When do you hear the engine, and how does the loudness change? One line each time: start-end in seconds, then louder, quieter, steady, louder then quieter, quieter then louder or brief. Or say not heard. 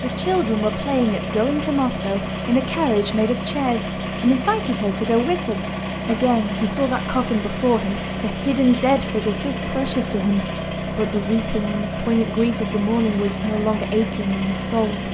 0.0-15.1 steady.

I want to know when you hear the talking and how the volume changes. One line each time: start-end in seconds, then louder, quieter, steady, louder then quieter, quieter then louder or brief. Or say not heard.
0.0-15.1 steady.